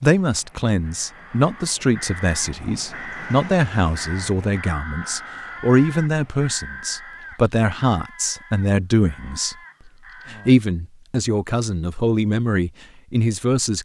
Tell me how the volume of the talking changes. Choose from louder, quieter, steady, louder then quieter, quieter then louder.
steady.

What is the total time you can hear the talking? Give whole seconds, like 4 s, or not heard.
13 s.